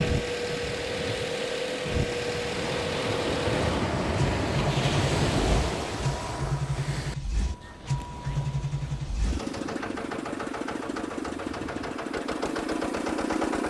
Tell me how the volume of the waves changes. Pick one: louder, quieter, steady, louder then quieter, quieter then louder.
louder then quieter.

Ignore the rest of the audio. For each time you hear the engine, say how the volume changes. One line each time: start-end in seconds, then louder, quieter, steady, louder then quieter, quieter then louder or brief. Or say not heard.
0.0-13.6 steady.